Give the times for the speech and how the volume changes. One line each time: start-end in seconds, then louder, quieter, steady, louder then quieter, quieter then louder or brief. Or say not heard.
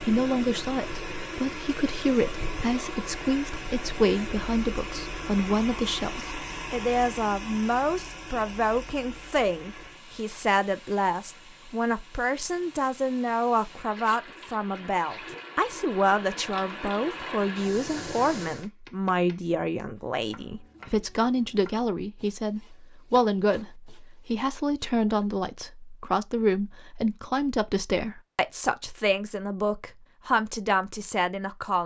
0.1-31.8 steady.